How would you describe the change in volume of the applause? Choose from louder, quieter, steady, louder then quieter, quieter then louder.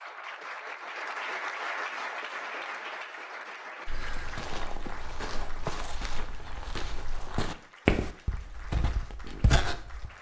quieter.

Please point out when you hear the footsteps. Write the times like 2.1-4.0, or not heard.
3.9-10.1.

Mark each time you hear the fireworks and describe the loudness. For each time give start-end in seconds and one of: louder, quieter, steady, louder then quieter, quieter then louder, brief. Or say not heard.
not heard.